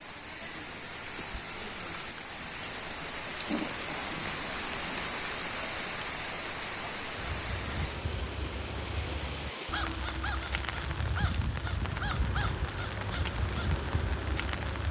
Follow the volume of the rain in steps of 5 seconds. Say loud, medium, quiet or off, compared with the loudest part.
loud, loud, medium.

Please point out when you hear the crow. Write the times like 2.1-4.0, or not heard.
7.2-14.8.